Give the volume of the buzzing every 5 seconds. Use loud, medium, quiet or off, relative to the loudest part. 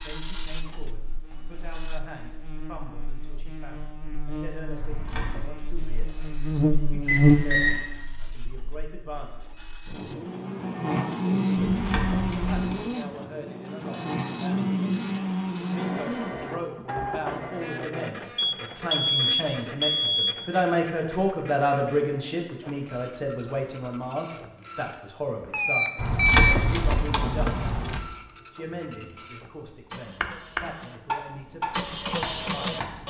quiet, loud, loud, medium, off, off, off.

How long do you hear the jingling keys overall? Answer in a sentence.
The jingling keys can be heard for 4 seconds in total.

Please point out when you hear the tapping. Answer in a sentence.
The tapping can be heard from 30.2 to 33.0 s.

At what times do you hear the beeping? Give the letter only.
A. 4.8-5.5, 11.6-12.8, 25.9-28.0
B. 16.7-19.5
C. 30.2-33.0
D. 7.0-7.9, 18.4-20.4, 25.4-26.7
D.